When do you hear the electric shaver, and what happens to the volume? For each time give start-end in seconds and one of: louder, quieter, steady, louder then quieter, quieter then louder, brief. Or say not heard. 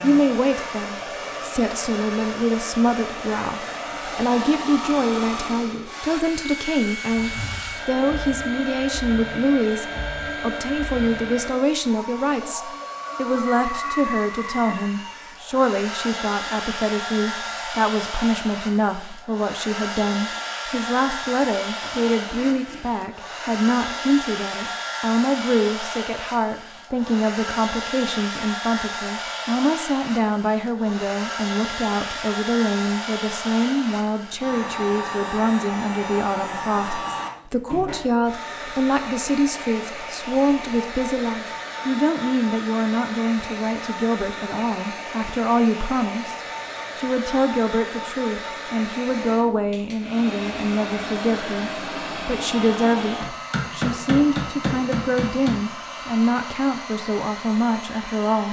not heard.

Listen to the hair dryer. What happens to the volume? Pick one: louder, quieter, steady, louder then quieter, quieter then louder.
steady.